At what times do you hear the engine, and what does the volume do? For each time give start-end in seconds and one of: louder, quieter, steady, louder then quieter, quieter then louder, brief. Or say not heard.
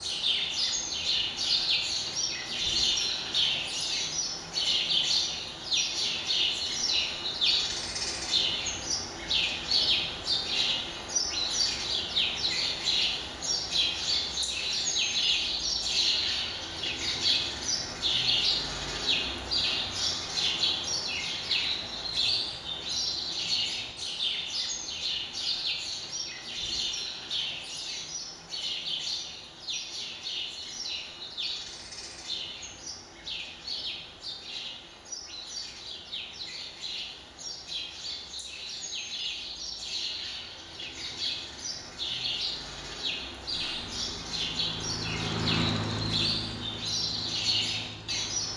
43.5-48.5 louder then quieter.